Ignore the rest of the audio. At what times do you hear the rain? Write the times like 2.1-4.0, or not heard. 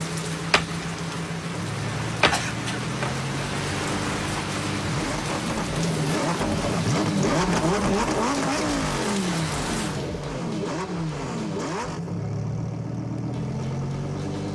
0.0-10.2.